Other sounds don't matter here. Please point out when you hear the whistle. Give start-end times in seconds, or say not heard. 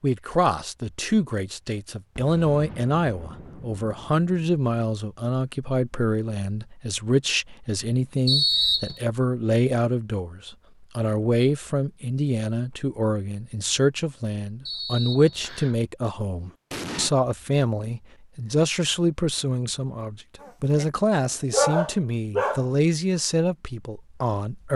8.2-9.0, 14.7-15.8.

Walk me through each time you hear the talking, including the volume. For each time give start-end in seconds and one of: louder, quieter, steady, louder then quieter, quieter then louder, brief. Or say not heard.
0.0-24.7 steady.